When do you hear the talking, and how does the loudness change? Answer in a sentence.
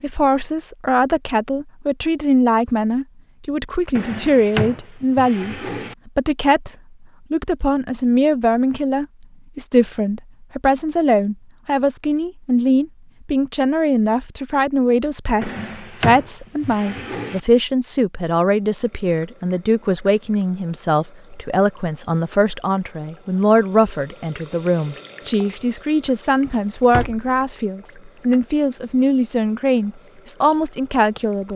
You can hear the talking from 0.0 to 31.5 s, at a steady volume.